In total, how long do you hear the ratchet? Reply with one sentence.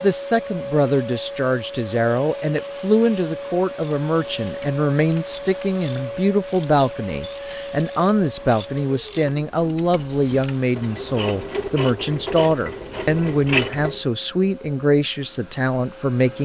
You can hear the ratchet for 10 seconds altogether.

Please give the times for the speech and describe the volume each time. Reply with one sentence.
You can hear the speech from 0.0 to 16.3 s, at a steady volume.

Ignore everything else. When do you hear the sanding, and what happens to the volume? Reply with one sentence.
You can't hear the sanding here.